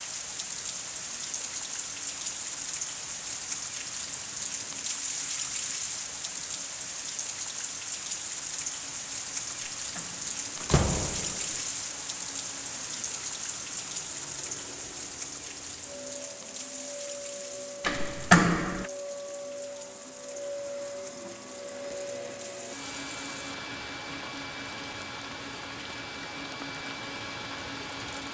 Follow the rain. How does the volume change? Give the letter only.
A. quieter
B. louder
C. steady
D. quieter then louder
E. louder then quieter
A.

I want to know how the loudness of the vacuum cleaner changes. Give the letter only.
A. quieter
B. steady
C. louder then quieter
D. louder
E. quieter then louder
D.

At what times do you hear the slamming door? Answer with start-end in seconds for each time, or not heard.
9.9-11.6, 17.8-18.9.